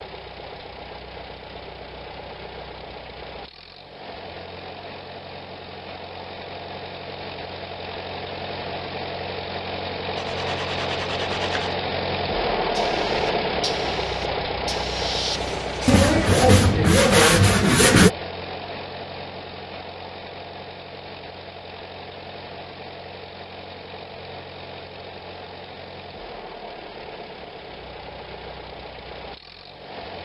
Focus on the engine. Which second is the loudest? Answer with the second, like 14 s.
13 s.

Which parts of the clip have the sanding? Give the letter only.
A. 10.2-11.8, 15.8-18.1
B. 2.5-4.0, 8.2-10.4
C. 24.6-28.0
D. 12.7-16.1
A.